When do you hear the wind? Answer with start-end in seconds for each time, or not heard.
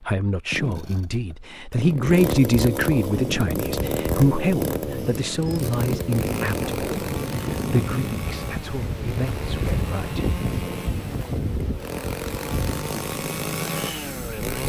3.0-14.6.